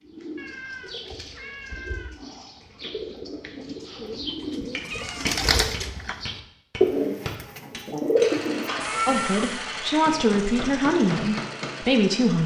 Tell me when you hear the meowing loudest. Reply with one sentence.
The volume of the meowing peaks at 9 seconds.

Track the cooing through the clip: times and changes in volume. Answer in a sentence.
You can hear the cooing from 0.0 to 9.2 s, getting louder.